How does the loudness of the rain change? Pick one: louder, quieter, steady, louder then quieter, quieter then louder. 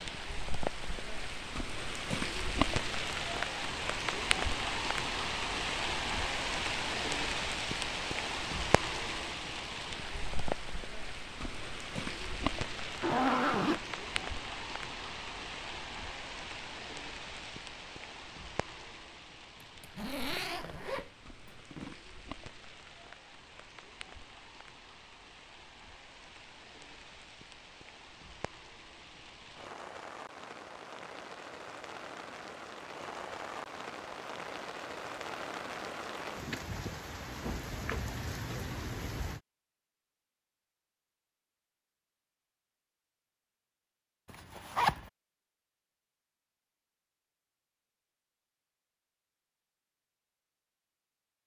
quieter then louder.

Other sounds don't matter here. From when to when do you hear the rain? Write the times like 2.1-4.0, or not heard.
0.0-39.4.